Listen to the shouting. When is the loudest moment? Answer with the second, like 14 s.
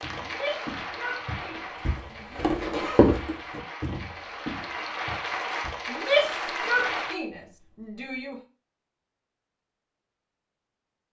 6 s.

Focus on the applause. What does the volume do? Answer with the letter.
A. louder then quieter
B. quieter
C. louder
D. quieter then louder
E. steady
D.